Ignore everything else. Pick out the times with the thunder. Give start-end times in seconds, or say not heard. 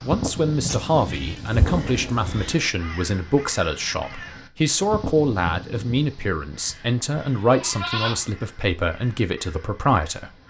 1.5-2.7.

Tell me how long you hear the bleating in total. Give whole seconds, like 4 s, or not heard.
3 s.